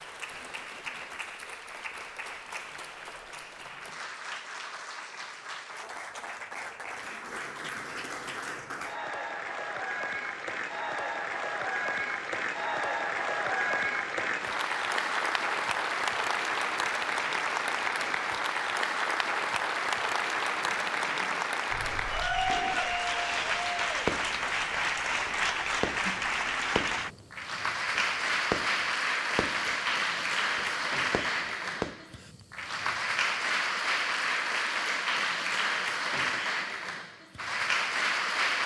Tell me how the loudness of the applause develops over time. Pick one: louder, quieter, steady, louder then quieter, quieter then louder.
louder.